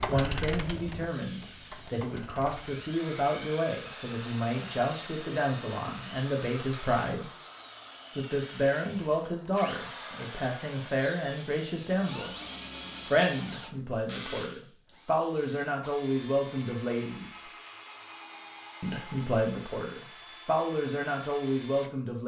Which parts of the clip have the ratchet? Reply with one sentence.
The ratchet can be heard from 0.0 to 2.8 s.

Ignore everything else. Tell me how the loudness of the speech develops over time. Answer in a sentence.
The loudness of the speech stays about the same.